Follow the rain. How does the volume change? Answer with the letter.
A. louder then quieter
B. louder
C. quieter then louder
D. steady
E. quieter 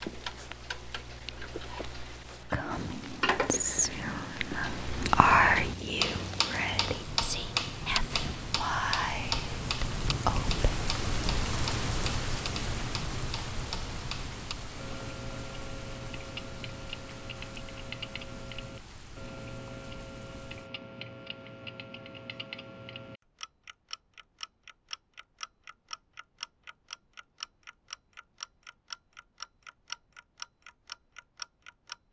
A.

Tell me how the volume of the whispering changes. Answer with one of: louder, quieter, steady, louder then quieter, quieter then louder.
louder then quieter.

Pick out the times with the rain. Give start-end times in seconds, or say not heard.
0.0-20.7.